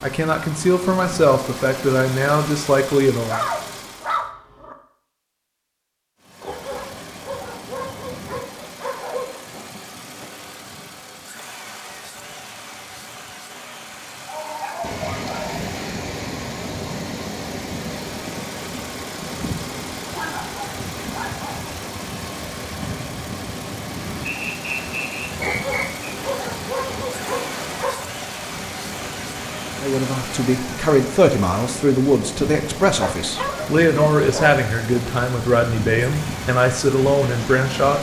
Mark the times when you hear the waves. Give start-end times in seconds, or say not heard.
14.8-37.9.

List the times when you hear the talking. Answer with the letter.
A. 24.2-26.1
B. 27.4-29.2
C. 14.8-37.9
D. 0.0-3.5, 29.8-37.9
D.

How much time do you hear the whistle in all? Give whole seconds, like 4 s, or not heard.
2 s.